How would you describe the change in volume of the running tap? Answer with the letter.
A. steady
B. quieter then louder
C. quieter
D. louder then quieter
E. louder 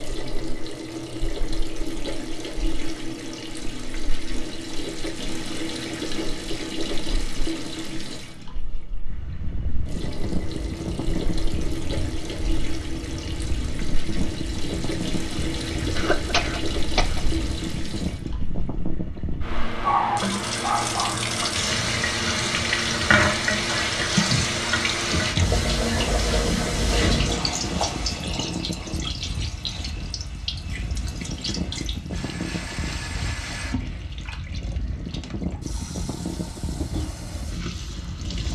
D.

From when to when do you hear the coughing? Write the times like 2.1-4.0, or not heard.
15.9-17.3.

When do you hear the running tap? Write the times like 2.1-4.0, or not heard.
0.0-38.4.